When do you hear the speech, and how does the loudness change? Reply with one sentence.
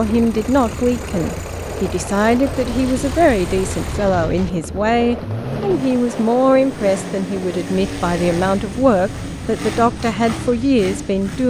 The speech can be heard from 0.0 to 11.4 s, at a steady volume.